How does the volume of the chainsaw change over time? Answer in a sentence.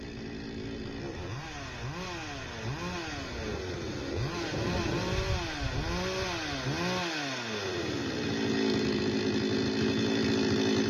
The volume of the chainsaw goes up.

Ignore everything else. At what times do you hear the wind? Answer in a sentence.
The wind can be heard from 0.0 to 6.7 s.